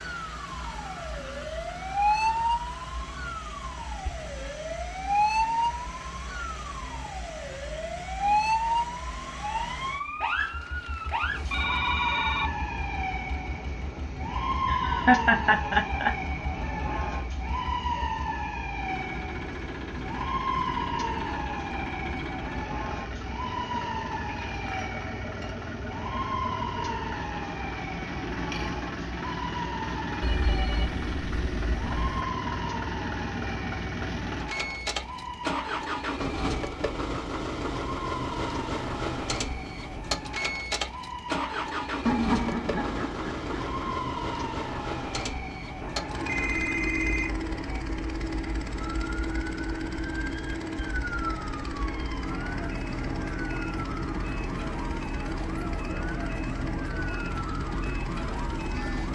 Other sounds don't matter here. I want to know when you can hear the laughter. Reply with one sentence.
You can hear the laughter from 14.7 to 16.1 s and from 42.0 to 44.0 s.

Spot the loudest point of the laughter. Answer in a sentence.
The loudest moment of the laughter is at 15 seconds.